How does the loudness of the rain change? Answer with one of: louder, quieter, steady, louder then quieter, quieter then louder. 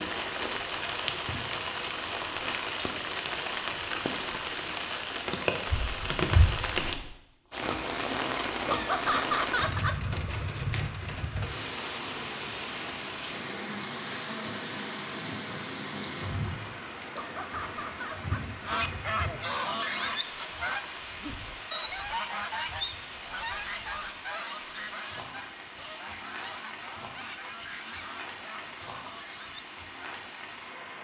quieter.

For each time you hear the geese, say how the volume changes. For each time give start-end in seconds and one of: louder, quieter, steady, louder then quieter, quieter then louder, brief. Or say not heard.
18.6-30.2 quieter.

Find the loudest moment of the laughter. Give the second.
9 s.